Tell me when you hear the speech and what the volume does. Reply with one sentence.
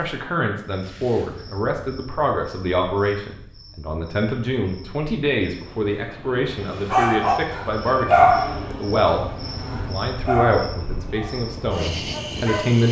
The speech can be heard from 0.0 to 12.8 s, at a steady volume.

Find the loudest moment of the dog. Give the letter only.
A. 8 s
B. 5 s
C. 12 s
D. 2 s
A.